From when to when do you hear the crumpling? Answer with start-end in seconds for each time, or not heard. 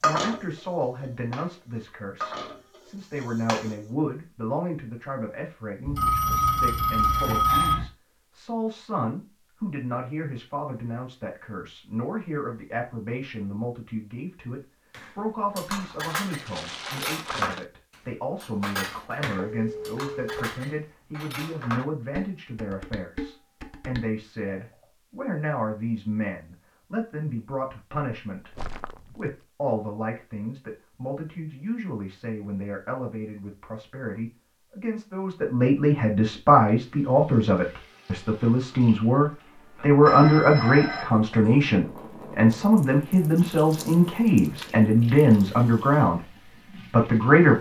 16.2-17.6, 28.4-29.4.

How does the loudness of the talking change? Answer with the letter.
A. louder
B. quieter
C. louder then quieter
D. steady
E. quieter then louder
A.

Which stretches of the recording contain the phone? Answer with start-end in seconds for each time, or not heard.
5.8-7.8, 19.4-20.3, 40.0-41.0.